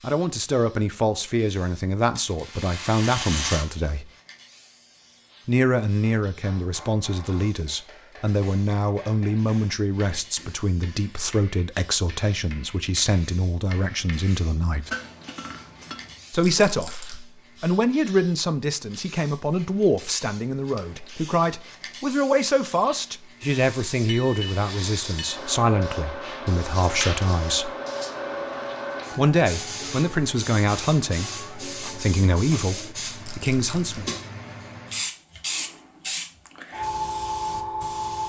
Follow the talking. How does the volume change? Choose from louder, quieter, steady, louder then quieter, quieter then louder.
steady.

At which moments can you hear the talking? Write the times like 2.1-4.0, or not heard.
0.0-4.1, 5.5-14.9, 16.3-27.8, 29.1-34.1.